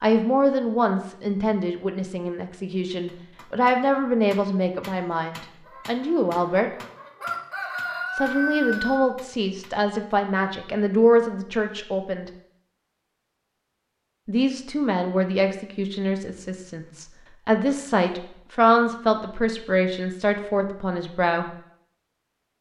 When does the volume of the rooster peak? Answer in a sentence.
The volume of the rooster peaks at 9 seconds.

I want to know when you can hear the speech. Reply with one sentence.
You can hear the speech from 0.0 to 6.7 s, from 8.2 to 12.3 s and from 14.2 to 21.4 s.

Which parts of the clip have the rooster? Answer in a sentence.
The rooster can be heard from 5.7 to 9.0 s.